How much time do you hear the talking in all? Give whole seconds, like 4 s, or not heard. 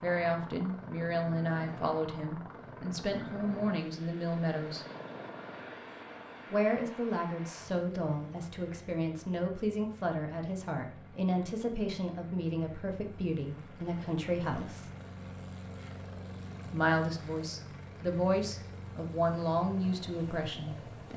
18 s.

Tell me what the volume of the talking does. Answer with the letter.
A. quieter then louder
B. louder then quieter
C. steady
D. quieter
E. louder
C.